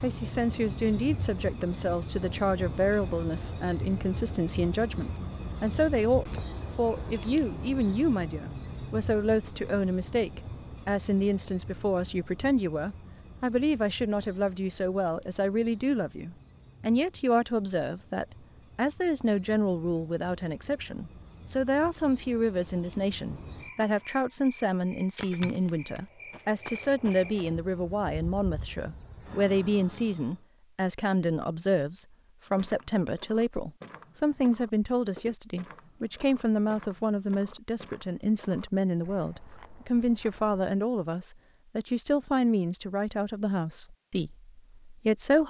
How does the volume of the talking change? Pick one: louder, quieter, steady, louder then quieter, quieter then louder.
steady.